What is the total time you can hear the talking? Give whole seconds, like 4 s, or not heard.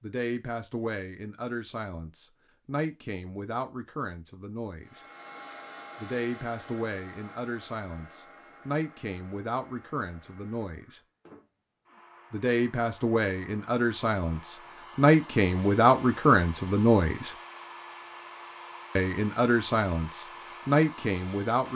18 s.